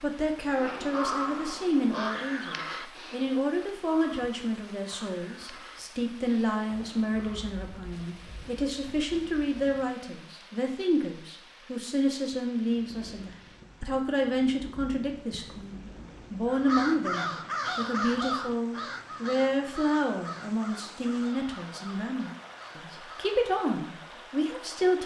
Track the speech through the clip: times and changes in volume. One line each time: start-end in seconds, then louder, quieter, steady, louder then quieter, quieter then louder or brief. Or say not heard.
0.0-25.0 steady.